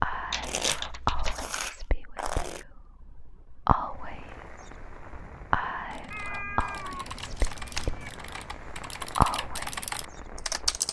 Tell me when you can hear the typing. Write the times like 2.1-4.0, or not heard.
0.1-1.5, 5.9-10.8.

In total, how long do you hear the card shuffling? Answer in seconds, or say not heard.
4 s.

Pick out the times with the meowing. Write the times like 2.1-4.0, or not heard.
6.1-8.1.